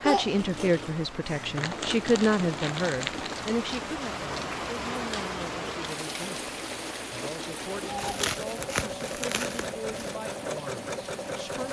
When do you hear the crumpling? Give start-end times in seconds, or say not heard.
1.6-3.5, 8.0-10.2.